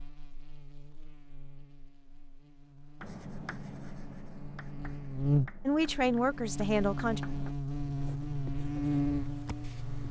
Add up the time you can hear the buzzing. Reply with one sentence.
The buzzing can be heard for 10 seconds in total.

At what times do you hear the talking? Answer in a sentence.
You can hear the talking from 5.7 to 7.2 s.